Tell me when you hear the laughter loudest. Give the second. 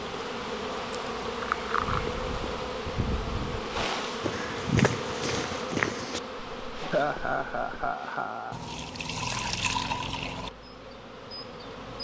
7 s.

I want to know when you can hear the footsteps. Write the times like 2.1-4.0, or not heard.
1.8-8.0.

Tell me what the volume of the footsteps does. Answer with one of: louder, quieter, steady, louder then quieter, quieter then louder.
louder then quieter.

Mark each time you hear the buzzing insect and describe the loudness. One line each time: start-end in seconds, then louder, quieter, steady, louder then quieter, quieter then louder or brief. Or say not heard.
0.0-11.9 quieter.